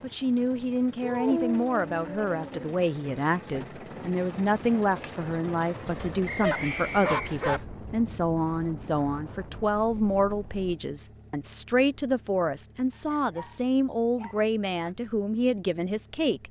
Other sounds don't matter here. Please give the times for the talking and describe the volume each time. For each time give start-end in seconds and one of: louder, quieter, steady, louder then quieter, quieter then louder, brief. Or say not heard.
0.0-16.4 steady.